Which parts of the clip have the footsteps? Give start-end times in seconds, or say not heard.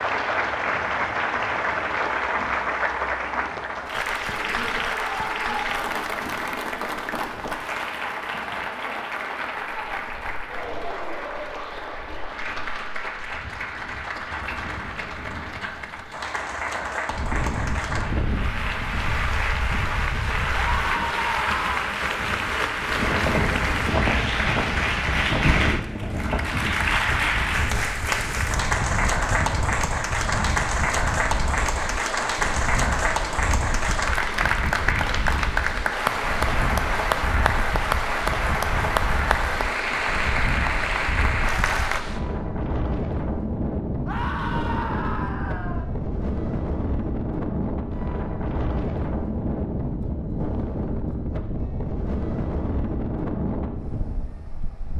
not heard.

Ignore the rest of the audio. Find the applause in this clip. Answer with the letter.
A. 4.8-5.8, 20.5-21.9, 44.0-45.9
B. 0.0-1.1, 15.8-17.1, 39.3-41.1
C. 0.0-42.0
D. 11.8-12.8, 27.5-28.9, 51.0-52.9
C.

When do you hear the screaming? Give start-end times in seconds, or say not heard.
4.8-5.8, 20.5-21.9, 44.0-45.9.